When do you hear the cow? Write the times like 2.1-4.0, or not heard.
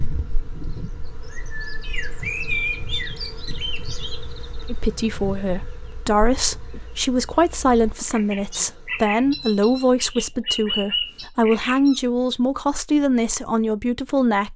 not heard.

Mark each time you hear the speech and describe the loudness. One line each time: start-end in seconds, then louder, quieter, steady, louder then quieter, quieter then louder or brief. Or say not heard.
4.7-14.5 steady.